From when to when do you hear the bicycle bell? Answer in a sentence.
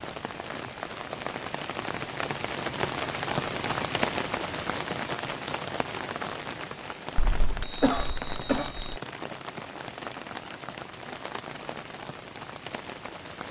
The bicycle bell can be heard from 7.2 to 8.9 s.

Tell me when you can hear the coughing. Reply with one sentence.
The coughing can be heard from 7.8 to 8.8 s.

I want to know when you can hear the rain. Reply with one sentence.
You can hear the rain from 0.0 to 13.4 s.